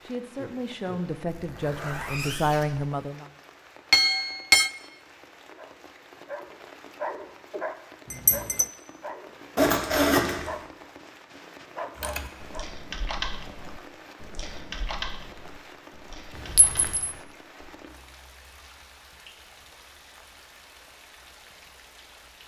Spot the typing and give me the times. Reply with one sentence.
The typing can be heard from 11.9 to 17.8 s.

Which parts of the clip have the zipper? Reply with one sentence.
You can hear the zipper from 1.2 to 2.9 s, from 9.6 to 10.6 s and from 16.3 to 17.0 s.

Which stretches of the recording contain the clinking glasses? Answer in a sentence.
You can hear the clinking glasses from 3.9 to 4.7 s, from 8.1 to 8.7 s and from 16.6 to 17.1 s.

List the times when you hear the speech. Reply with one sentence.
The speech can be heard from 0.0 to 3.2 s.